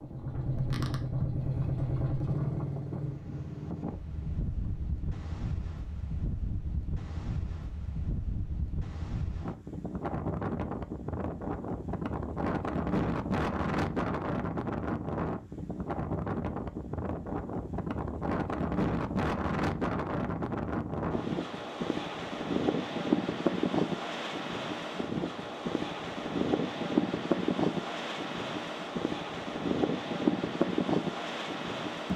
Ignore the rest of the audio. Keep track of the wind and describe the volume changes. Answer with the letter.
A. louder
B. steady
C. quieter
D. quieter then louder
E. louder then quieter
A.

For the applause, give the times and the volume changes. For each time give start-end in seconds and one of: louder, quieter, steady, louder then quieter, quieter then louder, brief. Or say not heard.
not heard.